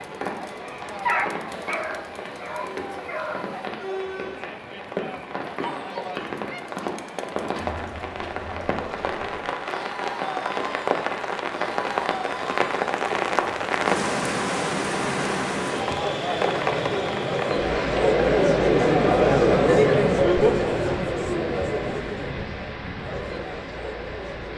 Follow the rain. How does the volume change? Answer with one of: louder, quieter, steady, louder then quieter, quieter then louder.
louder then quieter.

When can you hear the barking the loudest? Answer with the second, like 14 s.
1 s.